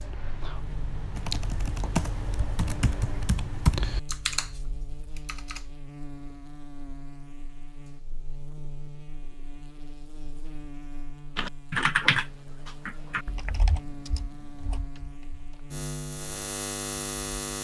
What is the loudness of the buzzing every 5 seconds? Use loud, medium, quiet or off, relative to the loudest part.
medium, medium, medium, loud.